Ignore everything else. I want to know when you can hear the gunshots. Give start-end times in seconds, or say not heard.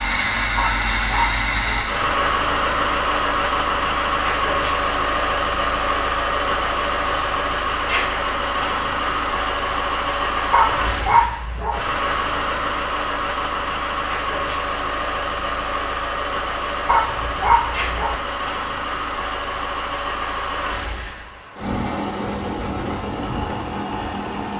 not heard.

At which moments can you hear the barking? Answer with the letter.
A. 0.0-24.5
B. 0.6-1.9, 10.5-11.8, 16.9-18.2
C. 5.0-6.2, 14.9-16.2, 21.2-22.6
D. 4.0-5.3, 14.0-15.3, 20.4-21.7
B.